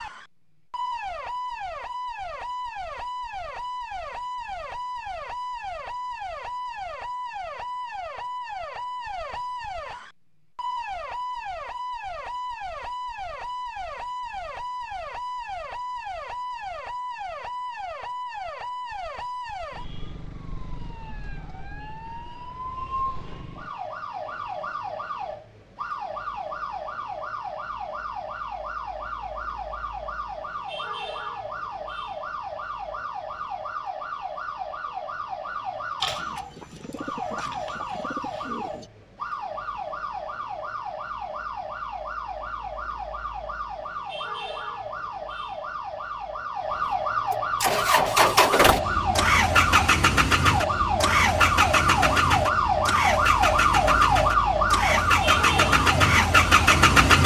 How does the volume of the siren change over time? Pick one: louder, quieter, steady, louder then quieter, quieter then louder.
louder.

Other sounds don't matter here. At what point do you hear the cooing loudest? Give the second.
36 s.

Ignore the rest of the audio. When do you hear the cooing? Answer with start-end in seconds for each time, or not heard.
36.0-38.9.